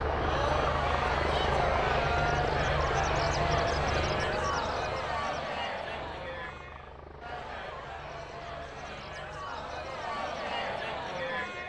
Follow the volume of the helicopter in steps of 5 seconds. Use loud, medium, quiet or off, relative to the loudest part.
loud, quiet, quiet.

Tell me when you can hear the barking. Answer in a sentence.
The barking can't be heard in this clip.